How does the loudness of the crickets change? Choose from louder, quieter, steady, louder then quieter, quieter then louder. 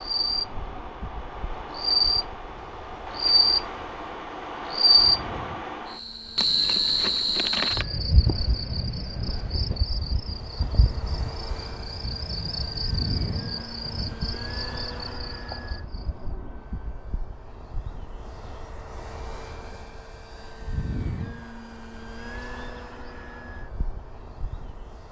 quieter.